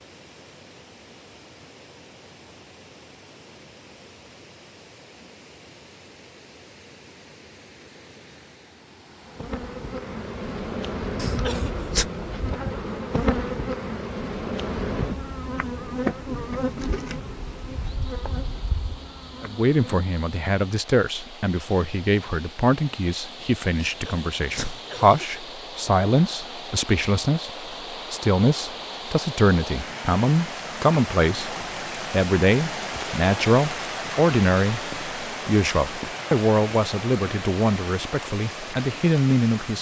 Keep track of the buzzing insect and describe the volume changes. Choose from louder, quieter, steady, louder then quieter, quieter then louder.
quieter.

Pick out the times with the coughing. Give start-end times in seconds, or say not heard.
11.2-12.1, 23.8-25.4.